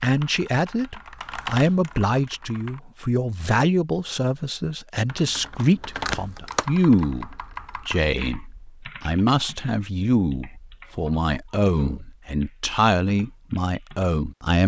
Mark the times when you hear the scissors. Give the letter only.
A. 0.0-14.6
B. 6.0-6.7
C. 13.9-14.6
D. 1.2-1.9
B.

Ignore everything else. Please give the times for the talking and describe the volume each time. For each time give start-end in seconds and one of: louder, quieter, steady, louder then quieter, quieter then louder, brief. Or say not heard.
0.0-14.6 steady.